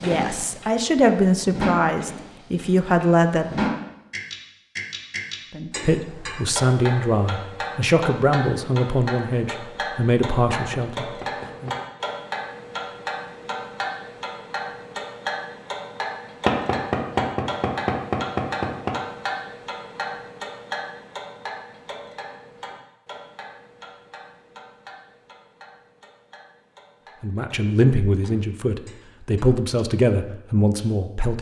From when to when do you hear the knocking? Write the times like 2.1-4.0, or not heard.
10.5-11.8, 16.4-18.9.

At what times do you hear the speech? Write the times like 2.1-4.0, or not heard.
0.0-3.8, 5.5-11.7, 27.2-31.3.